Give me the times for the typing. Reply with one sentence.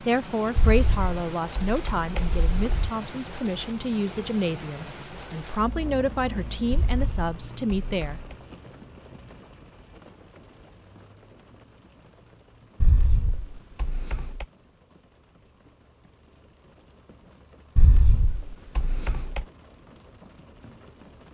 You can hear the typing from 0.6 to 2.9 s, from 6.7 to 8.3 s, from 12.8 to 14.4 s and from 17.8 to 19.4 s.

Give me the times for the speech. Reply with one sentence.
You can hear the speech from 0.0 to 8.6 s.